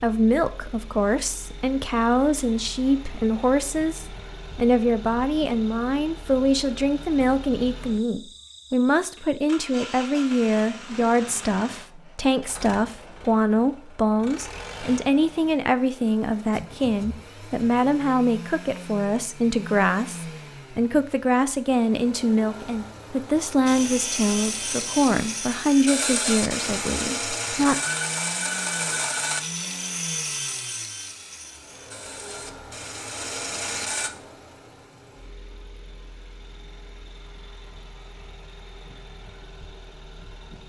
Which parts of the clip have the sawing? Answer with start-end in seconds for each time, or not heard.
23.6-34.1.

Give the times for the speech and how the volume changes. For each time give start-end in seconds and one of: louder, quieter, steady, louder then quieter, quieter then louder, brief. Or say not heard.
0.0-27.8 steady.